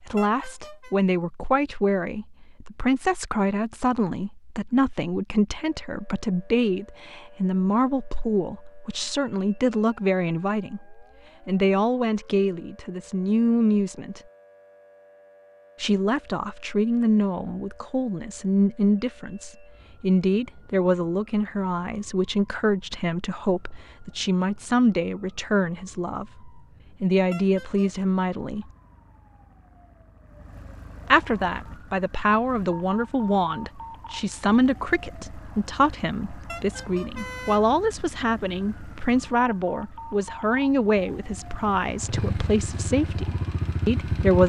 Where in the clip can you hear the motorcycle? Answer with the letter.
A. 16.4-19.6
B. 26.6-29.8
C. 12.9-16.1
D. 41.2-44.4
D.